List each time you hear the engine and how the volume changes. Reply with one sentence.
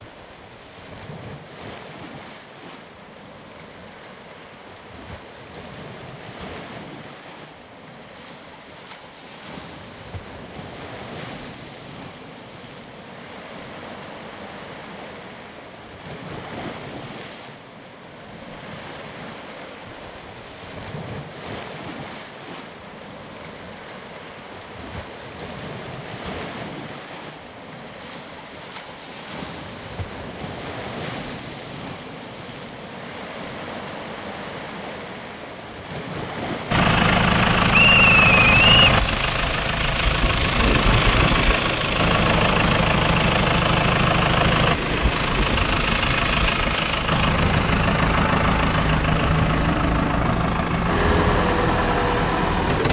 The engine can be heard from 36.7 to 52.8 s, at a steady volume.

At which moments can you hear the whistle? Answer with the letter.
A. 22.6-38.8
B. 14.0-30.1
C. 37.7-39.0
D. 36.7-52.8
C.